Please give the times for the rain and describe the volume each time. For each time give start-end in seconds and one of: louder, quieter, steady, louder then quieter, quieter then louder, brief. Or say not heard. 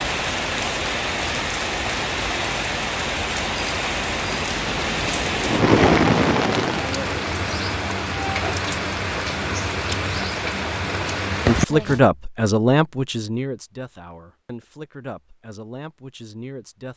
0.0-12.0 steady.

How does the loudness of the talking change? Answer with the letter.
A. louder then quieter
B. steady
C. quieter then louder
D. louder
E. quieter
E.